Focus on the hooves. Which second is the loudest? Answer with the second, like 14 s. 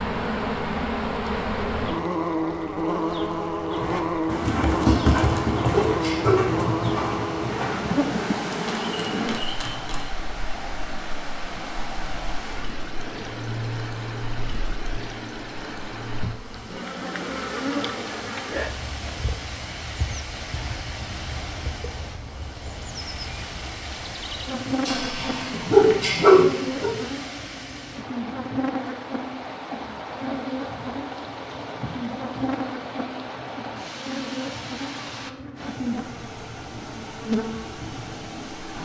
5 s.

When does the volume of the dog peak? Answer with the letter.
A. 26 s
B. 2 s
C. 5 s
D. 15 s
A.